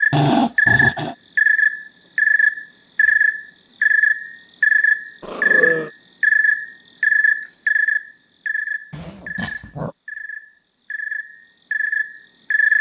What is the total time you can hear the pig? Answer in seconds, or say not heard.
not heard.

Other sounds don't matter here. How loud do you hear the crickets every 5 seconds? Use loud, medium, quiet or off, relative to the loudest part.
loud, loud, medium.